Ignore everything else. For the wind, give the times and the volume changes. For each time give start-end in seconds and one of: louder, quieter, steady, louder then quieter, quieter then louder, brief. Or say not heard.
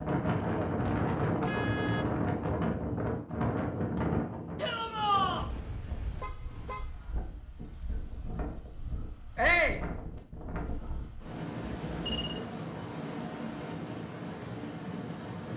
0.0-15.5 quieter then louder.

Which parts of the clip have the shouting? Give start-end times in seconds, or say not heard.
4.5-5.5, 9.3-9.8.